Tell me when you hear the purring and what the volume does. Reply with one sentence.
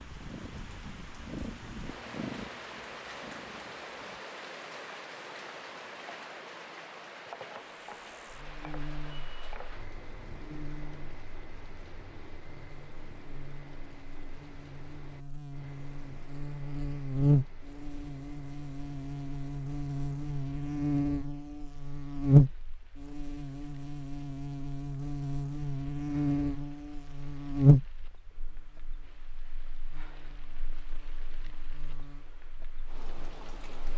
The purring can be heard from 0.0 to 4.2 s, getting louder then quieter.